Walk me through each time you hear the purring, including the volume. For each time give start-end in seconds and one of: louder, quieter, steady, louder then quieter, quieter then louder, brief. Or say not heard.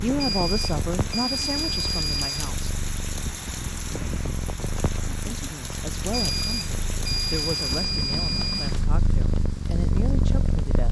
0.1-10.8 louder.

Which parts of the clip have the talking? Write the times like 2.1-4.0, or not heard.
0.0-2.8, 5.2-10.8.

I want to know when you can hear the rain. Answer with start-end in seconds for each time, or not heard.
0.0-10.8.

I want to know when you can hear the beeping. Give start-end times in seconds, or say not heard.
0.1-2.5, 6.1-8.8.